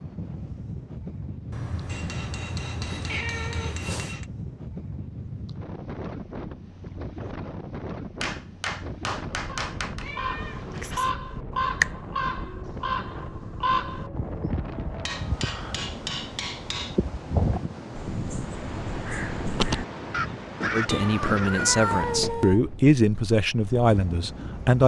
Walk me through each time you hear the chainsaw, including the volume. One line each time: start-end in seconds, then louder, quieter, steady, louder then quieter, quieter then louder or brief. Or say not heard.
not heard.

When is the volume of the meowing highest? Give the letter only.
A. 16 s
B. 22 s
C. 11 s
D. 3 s
B.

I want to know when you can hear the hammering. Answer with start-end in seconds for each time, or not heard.
1.9-4.2, 8.2-10.1, 15.0-17.0, 20.4-22.5.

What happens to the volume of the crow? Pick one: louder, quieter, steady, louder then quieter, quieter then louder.
quieter then louder.